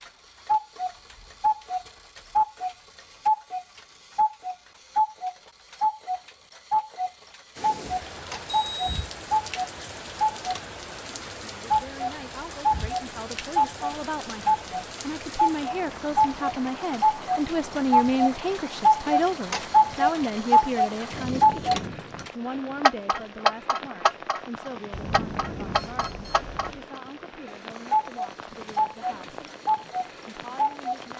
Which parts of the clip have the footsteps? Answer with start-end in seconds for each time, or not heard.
not heard.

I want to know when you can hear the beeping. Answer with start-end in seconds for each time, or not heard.
8.5-8.9, 24.9-26.9.